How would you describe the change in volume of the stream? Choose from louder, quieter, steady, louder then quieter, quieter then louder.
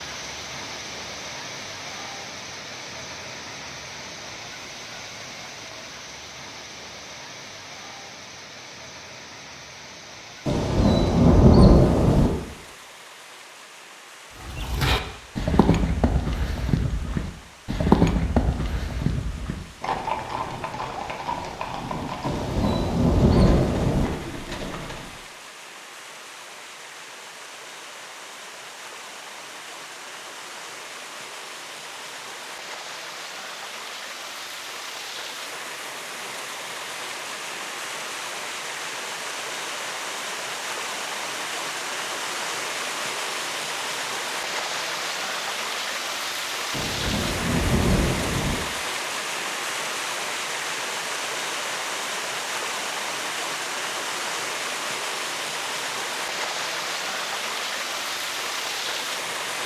quieter then louder.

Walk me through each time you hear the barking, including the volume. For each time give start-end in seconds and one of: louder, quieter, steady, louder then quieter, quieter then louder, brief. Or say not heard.
not heard.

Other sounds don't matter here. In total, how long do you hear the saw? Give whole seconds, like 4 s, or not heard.
not heard.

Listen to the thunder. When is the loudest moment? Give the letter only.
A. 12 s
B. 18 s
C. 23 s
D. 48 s
A.